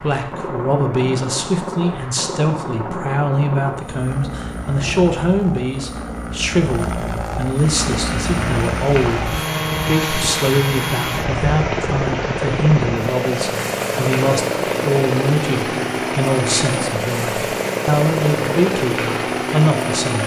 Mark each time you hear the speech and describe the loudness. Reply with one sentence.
The speech can be heard from 0.0 to 20.2 s, at a steady volume.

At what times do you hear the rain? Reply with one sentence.
You can hear the rain from 7.7 to 20.2 s.